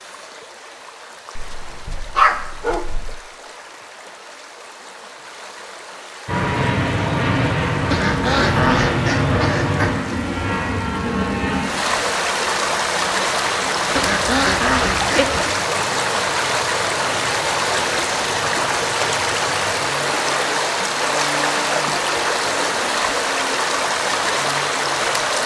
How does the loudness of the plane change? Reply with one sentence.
The loudness of the plane goes down.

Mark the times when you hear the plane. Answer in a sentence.
You can hear the plane from 6.2 to 25.4 s.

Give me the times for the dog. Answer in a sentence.
You can hear the dog from 1.4 to 3.1 s.